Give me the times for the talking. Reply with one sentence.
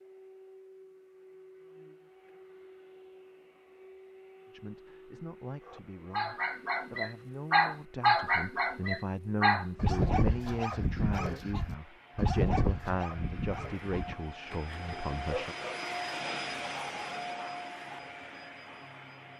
The talking can be heard from 4.5 to 15.6 s.